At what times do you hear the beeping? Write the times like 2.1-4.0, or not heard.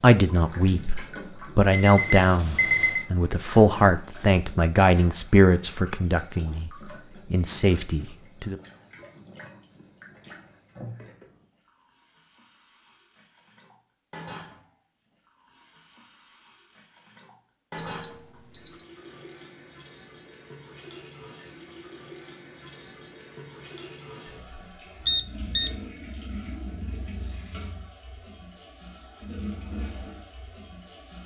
1.7-3.0, 17.8-18.9, 25.1-25.8.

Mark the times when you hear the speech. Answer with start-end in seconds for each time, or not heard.
0.0-6.7, 7.3-8.6.